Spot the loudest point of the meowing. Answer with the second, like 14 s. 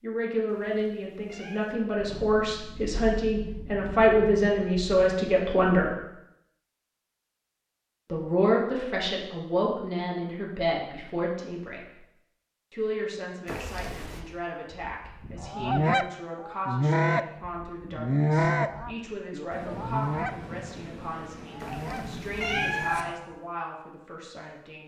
23 s.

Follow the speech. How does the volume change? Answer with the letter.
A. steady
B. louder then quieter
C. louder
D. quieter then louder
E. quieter
E.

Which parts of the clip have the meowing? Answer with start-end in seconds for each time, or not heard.
0.5-1.8, 13.4-14.2, 21.6-23.1.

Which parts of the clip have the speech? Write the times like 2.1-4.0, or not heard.
0.0-6.0, 8.1-11.9, 12.7-24.8.